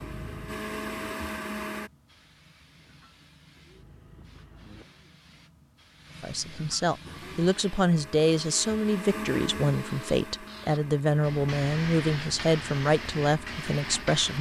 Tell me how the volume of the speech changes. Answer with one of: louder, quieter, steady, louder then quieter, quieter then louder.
steady.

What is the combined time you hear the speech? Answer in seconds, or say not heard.
8 s.